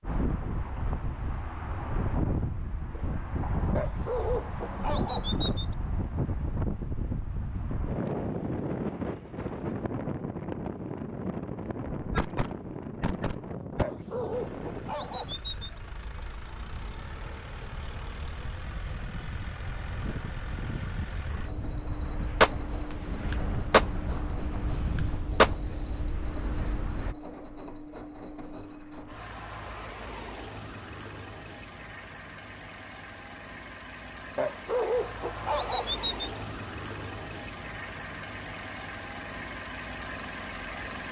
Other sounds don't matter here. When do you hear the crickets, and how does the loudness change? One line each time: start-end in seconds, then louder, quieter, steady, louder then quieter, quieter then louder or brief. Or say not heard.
not heard.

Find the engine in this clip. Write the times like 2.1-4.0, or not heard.
14.3-41.0.